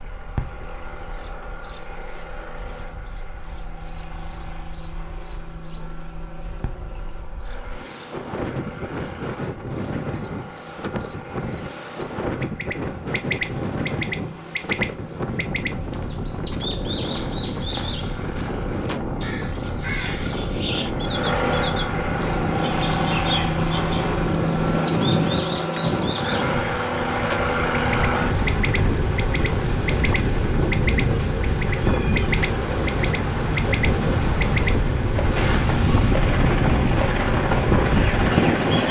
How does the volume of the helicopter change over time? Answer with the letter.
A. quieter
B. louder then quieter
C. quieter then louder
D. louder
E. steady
D.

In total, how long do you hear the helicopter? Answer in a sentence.
You can hear the helicopter for 39 seconds altogether.